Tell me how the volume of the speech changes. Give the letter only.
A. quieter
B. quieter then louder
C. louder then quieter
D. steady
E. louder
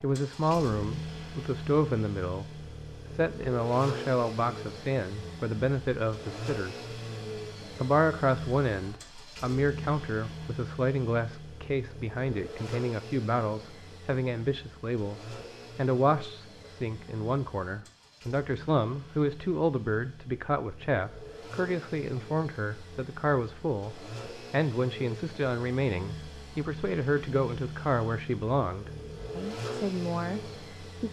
D.